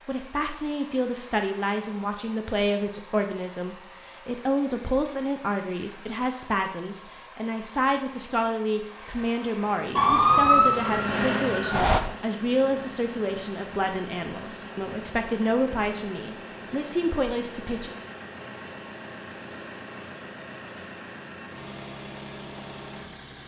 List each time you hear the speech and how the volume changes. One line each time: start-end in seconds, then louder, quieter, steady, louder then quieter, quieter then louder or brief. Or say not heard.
0.1-17.9 steady.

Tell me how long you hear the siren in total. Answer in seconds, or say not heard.
2 s.